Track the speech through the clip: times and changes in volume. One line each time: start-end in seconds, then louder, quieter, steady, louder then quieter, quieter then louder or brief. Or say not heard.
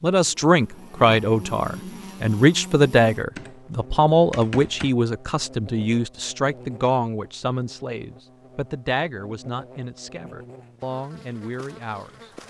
0.0-12.3 quieter.